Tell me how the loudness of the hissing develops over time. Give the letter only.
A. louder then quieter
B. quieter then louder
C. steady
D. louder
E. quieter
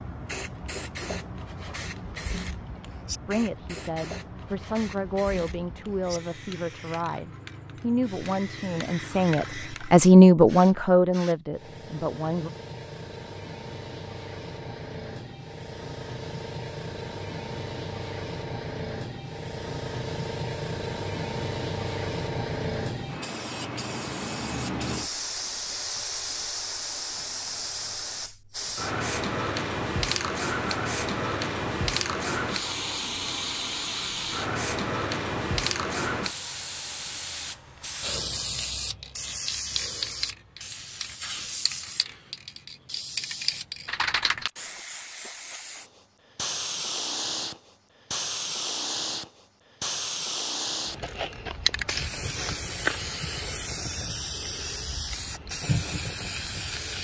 D.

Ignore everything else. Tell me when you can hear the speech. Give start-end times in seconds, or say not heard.
3.2-12.5.